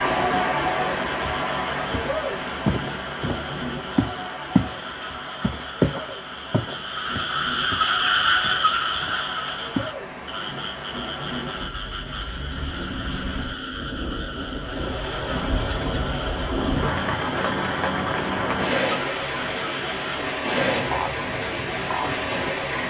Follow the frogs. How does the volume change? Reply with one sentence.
The volume of the frogs goes up, then down.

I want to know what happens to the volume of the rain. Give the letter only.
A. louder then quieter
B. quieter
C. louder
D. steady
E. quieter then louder
E.